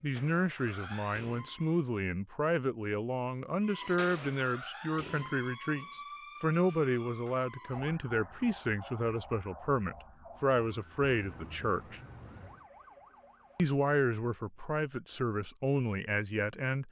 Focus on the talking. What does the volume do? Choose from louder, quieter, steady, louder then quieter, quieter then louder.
steady.